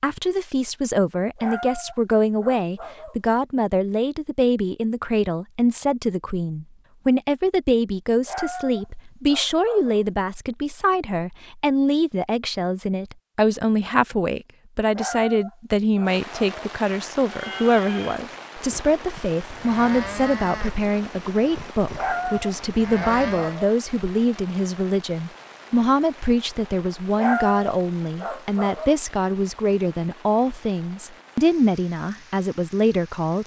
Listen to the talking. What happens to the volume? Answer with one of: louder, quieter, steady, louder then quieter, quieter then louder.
steady.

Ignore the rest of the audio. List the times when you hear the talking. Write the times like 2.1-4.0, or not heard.
0.0-33.4.